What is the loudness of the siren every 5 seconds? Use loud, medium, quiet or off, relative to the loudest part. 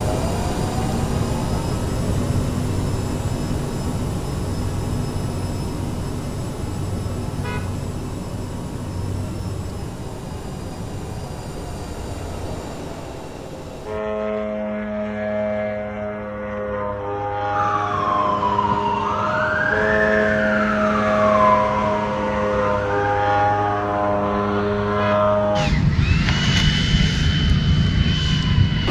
off, off, off, loud, loud, quiet.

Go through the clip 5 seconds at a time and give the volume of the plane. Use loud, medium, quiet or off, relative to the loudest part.
medium, medium, medium, medium, loud, loud.